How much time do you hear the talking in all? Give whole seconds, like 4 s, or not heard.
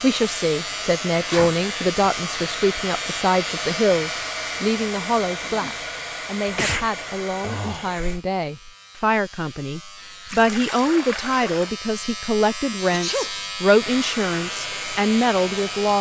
16 s.